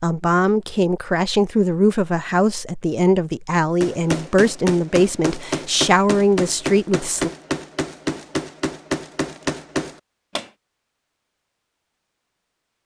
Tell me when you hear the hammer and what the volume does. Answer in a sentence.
The hammer can be heard from 3.8 to 10.5 s, at a steady volume.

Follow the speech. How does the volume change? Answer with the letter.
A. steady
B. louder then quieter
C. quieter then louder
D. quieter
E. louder
A.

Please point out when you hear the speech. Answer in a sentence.
The speech can be heard from 0.0 to 7.3 s.